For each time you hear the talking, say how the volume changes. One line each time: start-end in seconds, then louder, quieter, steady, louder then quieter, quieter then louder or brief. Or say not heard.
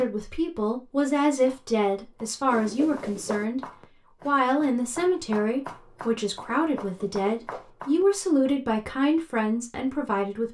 0.0-10.4 steady.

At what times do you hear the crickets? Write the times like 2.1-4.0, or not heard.
not heard.